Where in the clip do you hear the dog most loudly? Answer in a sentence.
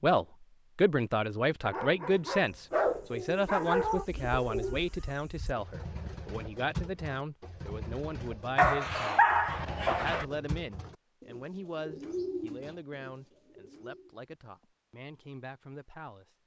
The volume of the dog peaks at 9 seconds.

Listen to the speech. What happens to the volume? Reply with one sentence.
The loudness of the speech goes down.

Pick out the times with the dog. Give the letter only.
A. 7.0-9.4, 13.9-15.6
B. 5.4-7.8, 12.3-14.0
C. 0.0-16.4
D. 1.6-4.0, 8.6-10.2
D.